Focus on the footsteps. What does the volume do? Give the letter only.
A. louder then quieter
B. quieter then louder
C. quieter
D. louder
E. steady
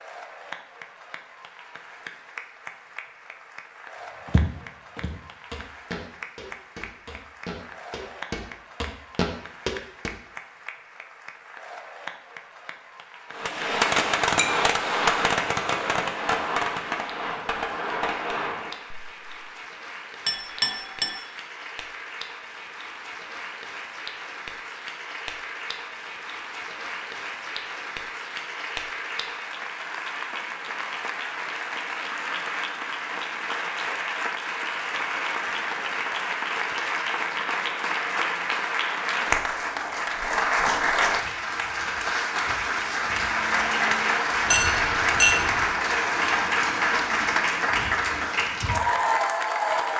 D.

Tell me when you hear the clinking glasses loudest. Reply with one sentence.
The loudest moment of the clinking glasses is at 45 seconds.